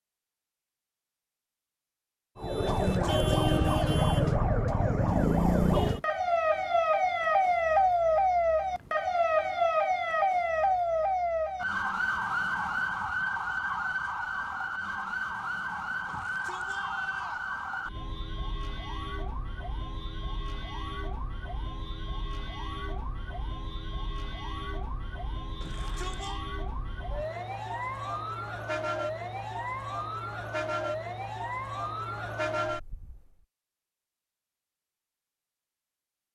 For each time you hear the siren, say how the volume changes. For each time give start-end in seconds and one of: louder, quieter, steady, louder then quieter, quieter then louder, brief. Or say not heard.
2.4-33.4 quieter then louder.